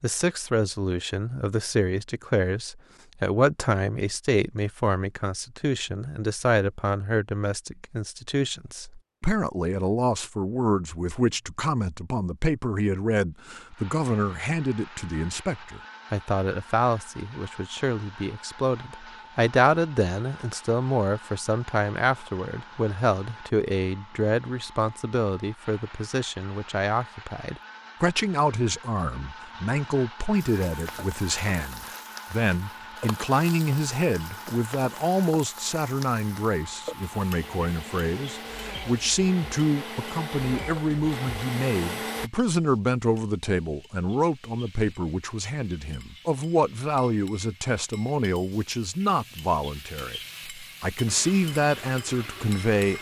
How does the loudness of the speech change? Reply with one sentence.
The loudness of the speech stays about the same.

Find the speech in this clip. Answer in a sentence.
You can hear the speech from 0.0 to 52.9 s.